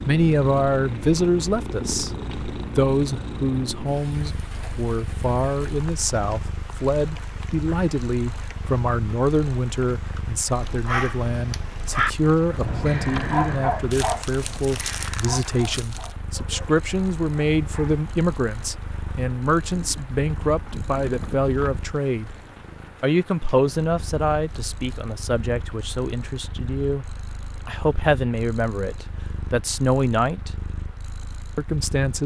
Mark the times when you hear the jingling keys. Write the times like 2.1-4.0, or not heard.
12.6-13.8, 20.4-21.9.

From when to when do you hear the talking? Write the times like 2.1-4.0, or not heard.
0.1-2.1, 2.8-22.4, 23.0-30.5, 31.6-32.2.